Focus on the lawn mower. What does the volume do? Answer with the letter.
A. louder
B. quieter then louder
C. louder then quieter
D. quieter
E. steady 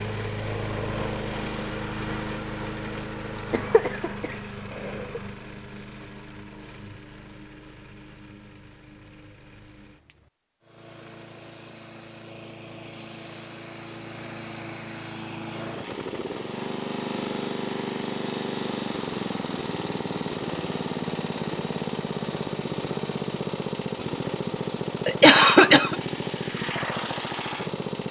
B.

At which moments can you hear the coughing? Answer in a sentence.
You can hear the coughing from 3.5 to 5.2 s and from 25.1 to 25.9 s.